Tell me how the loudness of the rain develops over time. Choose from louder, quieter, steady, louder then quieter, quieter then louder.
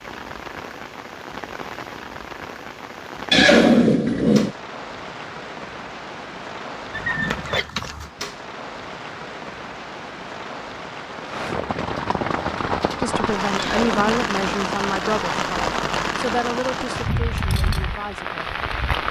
louder.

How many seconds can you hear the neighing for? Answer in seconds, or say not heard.
3 s.